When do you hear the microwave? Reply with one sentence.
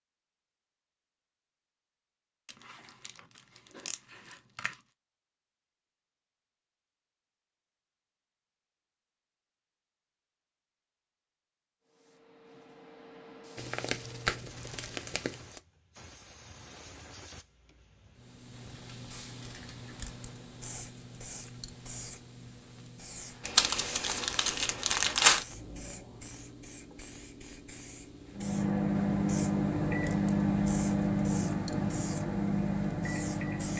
The microwave can be heard from 28.3 to 33.7 s.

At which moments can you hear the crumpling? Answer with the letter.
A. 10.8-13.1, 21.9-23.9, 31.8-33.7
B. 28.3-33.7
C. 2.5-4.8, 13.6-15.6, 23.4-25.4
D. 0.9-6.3
C.